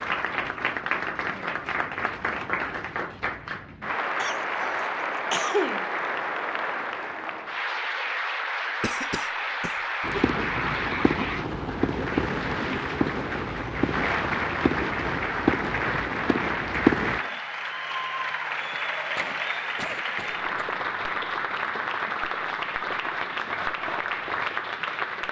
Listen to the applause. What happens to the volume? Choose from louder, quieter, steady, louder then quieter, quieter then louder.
steady.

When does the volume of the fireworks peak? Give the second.
17 s.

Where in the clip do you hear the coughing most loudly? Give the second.
5 s.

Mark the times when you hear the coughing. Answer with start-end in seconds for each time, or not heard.
4.2-5.8, 8.8-10.2, 18.7-20.6.